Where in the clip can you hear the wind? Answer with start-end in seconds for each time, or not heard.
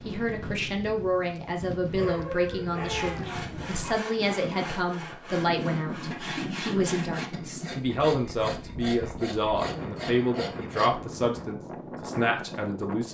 0.0-13.0.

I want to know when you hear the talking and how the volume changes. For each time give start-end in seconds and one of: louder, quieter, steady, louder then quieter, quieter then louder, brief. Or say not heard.
0.1-13.0 steady.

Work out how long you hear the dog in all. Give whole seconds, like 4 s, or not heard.
2 s.